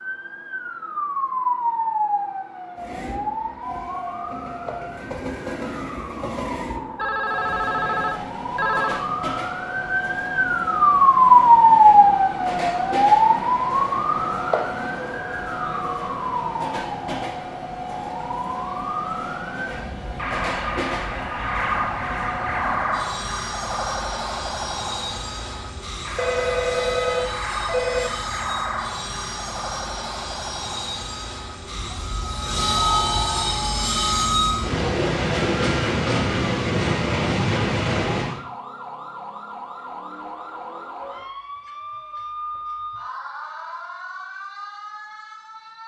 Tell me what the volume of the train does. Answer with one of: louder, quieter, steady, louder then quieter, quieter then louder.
louder.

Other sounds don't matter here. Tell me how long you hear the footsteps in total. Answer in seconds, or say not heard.
not heard.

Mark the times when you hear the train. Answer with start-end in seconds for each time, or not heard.
2.8-38.4.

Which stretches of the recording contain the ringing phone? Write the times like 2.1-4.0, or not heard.
7.0-9.1, 26.1-28.1, 32.8-33.5.